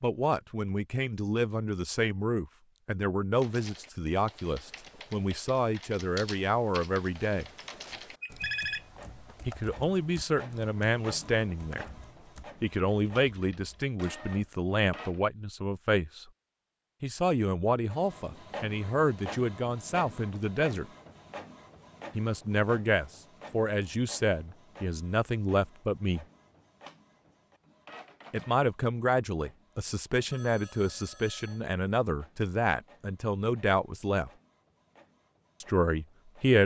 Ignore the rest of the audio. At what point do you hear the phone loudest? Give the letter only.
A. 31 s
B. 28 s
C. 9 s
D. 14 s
C.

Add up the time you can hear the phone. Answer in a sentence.
You can hear the phone for 3 seconds altogether.